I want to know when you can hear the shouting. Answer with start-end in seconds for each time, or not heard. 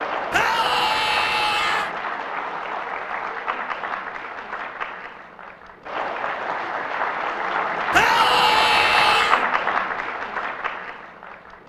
0.3-1.9, 7.9-9.4.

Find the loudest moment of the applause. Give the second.
9 s.